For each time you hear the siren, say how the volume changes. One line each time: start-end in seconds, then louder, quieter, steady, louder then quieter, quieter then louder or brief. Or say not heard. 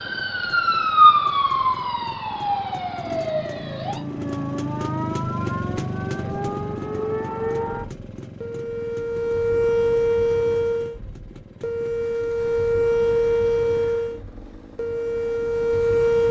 0.0-16.2 quieter then louder.